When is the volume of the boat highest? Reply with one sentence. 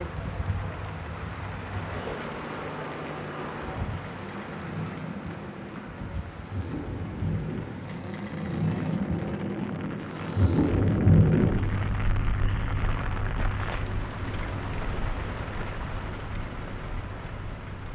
The volume of the boat peaks at 11 seconds.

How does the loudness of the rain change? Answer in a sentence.
The volume of the rain goes down, then up.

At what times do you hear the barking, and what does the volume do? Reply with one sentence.
You can't hear the barking here.